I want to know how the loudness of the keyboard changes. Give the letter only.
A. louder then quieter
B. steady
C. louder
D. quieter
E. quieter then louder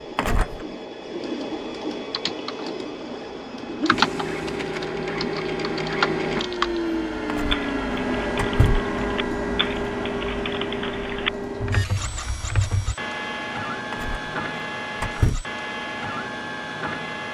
E.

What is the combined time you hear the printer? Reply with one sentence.
You can hear the printer for 17 seconds altogether.